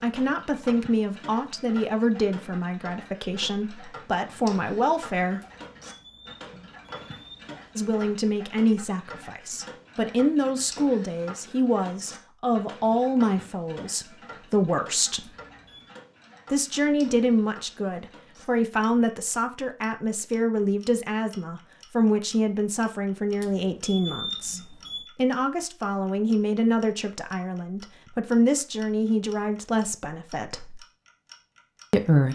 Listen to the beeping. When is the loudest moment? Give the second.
24 s.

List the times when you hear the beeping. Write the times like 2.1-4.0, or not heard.
5.4-7.5, 15.2-15.9, 23.4-25.1.